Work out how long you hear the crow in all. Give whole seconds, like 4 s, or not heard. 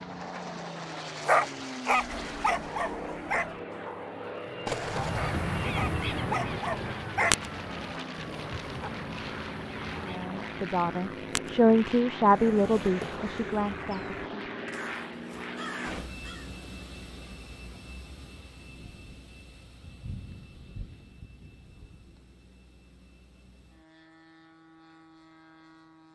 12 s.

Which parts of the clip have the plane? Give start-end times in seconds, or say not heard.
0.0-26.1.